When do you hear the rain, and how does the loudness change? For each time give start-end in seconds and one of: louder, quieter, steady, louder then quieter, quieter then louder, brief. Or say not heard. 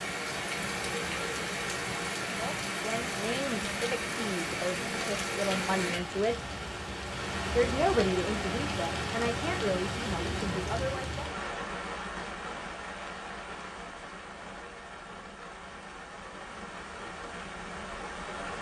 0.0-18.5 quieter.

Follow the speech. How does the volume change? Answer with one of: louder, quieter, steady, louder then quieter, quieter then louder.
louder then quieter.